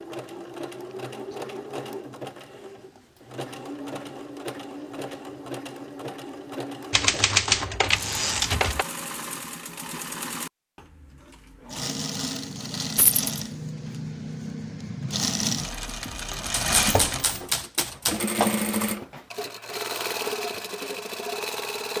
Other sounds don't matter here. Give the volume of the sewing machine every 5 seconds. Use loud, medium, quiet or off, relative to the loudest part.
medium, medium, medium, loud, loud.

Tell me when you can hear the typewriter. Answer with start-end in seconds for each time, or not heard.
6.9-8.8, 16.5-18.2.